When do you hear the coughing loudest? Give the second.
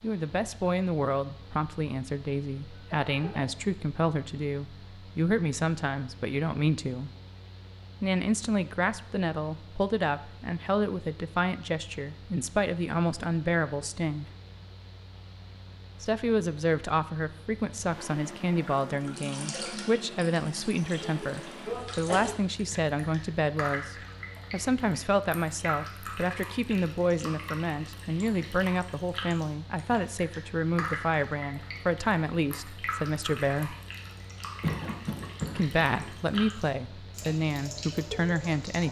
35 s.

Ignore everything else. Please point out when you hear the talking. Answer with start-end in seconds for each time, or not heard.
0.0-7.1, 8.0-14.2, 16.0-33.8, 35.5-38.8.